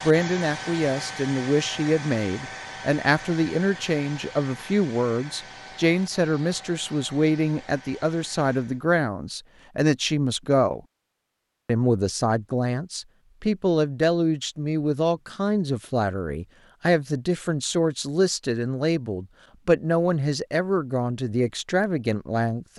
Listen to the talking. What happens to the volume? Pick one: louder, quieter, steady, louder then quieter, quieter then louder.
steady.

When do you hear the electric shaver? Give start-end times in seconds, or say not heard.
not heard.